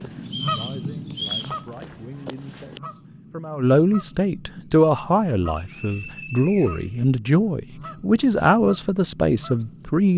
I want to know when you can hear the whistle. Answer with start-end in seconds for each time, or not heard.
0.2-1.6, 5.5-7.0.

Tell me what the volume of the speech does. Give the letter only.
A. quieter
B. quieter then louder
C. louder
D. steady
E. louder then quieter
C.